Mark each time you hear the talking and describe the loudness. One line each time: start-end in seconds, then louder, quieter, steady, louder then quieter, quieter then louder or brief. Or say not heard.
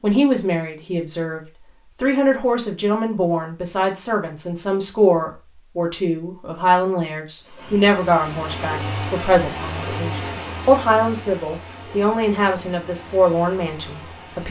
0.0-14.4 steady.